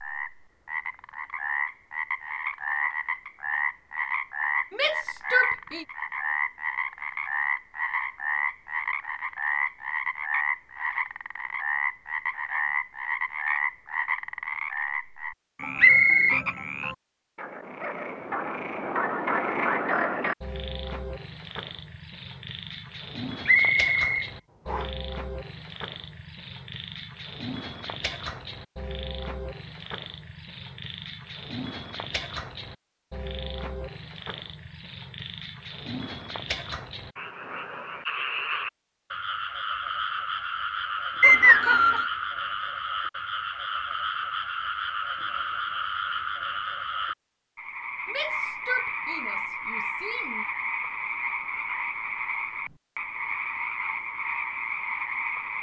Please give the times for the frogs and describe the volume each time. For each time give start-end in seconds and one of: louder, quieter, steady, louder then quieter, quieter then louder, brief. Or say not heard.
0.0-55.5 quieter then louder.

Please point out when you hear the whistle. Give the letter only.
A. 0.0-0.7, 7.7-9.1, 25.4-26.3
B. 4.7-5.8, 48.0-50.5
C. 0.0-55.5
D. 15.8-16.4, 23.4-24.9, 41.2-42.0
D.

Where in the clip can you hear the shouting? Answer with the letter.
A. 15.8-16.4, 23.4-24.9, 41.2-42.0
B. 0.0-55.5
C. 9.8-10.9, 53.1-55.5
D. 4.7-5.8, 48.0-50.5
D.